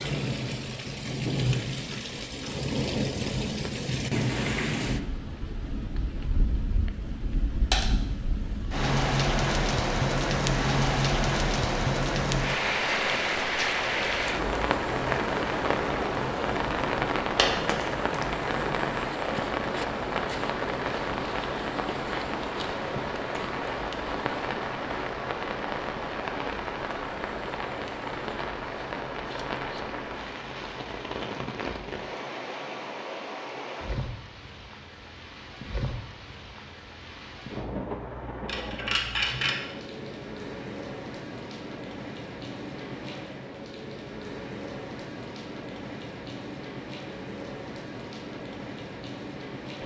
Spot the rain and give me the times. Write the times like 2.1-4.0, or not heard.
0.0-49.8.